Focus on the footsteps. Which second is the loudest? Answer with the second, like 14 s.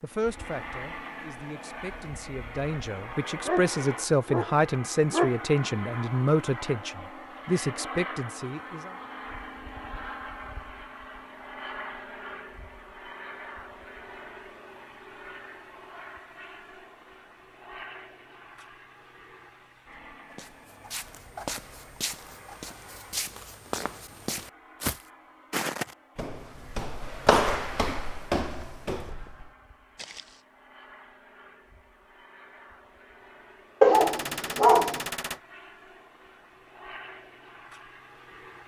27 s.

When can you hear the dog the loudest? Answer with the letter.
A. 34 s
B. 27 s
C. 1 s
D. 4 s
A.